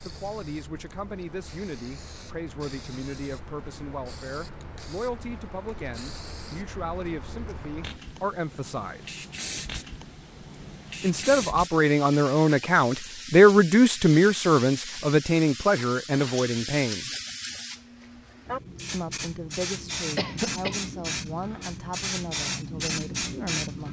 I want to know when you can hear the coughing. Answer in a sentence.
The coughing can be heard from 20.1 to 20.8 s.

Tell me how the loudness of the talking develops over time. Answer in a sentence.
The volume of the talking goes up, then down.